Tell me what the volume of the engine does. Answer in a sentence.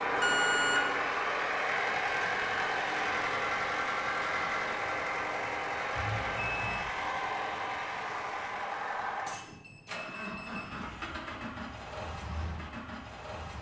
The loudness of the engine goes down.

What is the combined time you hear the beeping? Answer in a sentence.
The beeping can be heard for 3 seconds in total.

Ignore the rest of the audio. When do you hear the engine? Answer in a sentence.
The engine can be heard from 0.0 to 13.5 s.